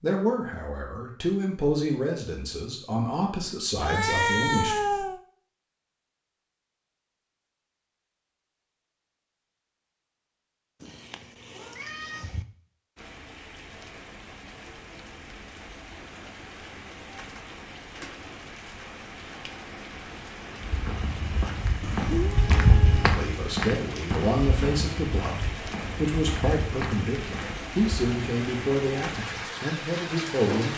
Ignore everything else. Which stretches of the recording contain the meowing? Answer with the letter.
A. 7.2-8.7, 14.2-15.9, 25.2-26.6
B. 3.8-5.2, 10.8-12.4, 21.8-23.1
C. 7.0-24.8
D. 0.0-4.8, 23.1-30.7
B.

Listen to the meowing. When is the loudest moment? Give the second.
4 s.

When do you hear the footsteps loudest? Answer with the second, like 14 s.
23 s.